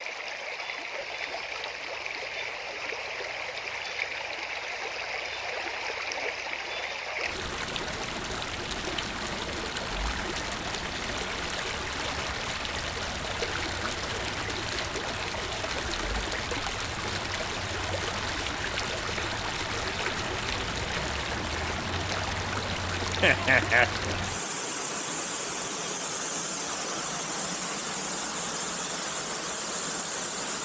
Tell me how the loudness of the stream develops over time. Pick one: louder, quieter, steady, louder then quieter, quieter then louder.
steady.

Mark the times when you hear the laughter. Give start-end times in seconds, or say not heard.
23.2-23.9.